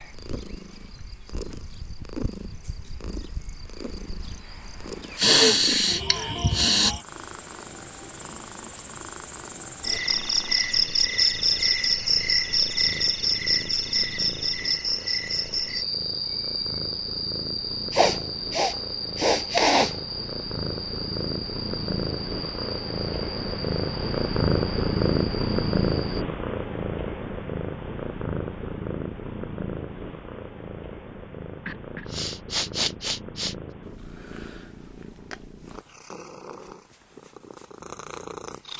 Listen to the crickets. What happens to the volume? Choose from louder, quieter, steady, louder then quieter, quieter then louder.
louder then quieter.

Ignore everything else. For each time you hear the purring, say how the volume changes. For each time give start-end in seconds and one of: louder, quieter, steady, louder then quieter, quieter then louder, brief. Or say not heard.
0.0-38.7 louder then quieter.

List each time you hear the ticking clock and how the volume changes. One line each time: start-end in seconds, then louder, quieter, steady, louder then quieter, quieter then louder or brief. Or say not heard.
not heard.